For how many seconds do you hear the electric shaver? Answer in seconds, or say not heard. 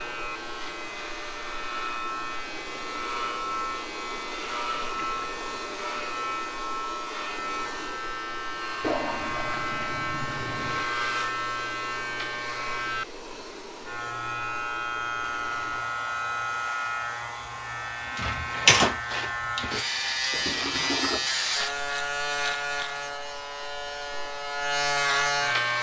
26 s.